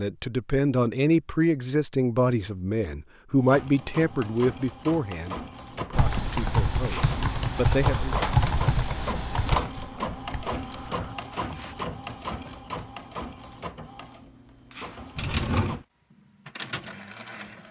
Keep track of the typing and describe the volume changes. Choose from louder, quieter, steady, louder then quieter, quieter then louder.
quieter.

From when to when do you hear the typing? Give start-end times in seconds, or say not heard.
5.9-11.8.